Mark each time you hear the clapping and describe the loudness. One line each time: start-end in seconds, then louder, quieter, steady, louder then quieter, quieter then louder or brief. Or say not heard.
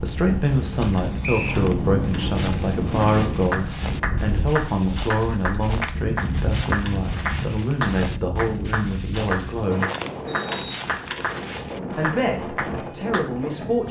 3.5-11.4 steady
12.0-13.3 brief.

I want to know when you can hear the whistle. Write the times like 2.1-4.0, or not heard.
1.2-1.6, 10.2-10.8.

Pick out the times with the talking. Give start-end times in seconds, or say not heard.
0.0-9.9, 11.9-13.8.